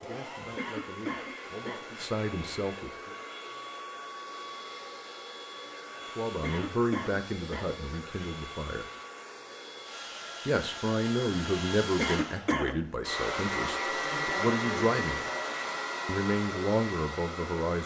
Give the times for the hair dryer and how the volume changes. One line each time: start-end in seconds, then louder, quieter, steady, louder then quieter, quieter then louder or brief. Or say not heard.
0.0-17.8 louder.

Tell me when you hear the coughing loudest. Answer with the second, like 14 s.
12 s.